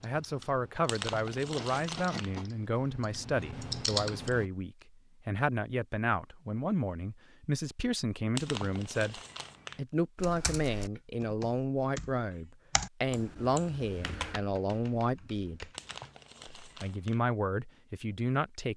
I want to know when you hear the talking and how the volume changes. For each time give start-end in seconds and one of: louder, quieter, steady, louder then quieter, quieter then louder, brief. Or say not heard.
0.0-15.7 steady
16.6-18.7 brief.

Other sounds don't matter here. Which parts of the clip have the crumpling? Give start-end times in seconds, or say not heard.
0.8-2.4, 8.3-9.8, 15.8-17.2.